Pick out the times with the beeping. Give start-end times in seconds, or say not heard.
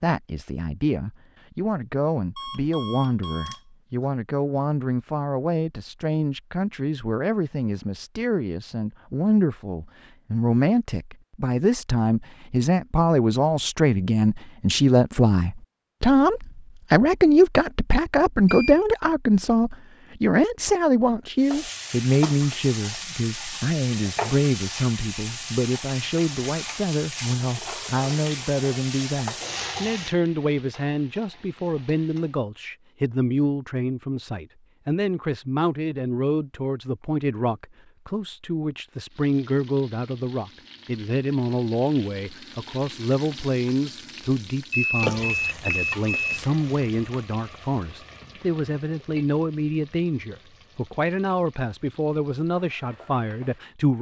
2.4-3.6, 18.4-18.9, 44.7-46.4.